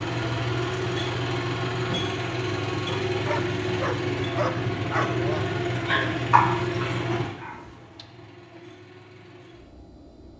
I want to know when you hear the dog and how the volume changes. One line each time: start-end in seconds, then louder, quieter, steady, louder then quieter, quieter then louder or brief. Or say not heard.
3.1-8.1 louder then quieter.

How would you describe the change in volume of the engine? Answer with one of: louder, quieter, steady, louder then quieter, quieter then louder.
quieter.